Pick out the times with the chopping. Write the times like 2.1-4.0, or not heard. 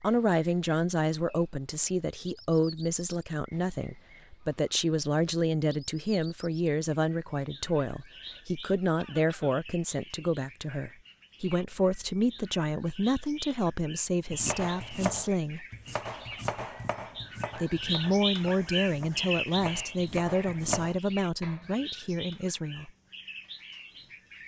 14.3-21.6.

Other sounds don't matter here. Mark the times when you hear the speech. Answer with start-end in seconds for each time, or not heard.
0.0-15.7, 17.6-22.9.